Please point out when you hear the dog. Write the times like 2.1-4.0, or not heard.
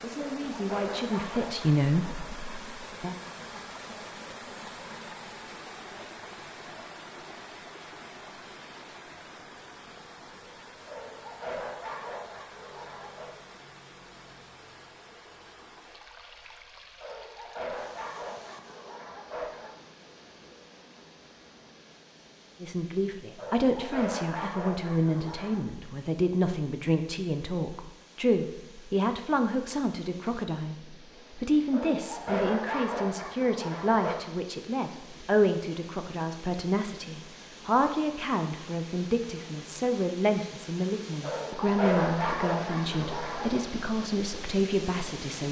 0.1-2.2, 10.8-13.3, 17.0-19.8, 23.4-25.6, 31.7-34.1, 41.2-43.6.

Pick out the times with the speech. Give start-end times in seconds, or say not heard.
0.0-3.1, 22.6-45.4.